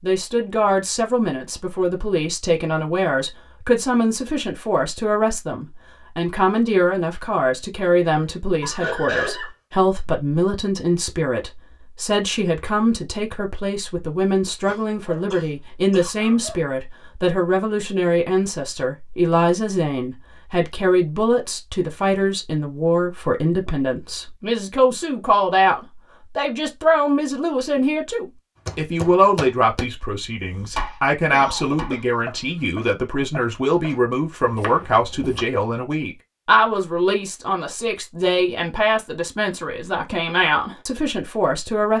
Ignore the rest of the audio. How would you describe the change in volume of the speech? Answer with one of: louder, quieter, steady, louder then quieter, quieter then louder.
steady.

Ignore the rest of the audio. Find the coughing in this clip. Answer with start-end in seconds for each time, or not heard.
8.6-9.5, 14.7-16.1, 31.3-32.0.